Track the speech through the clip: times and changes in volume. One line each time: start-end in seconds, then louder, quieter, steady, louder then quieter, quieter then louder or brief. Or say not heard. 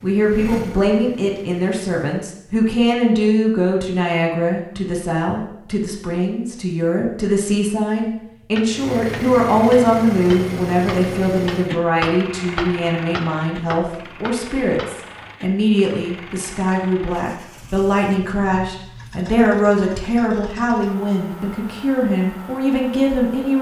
0.0-23.5 steady.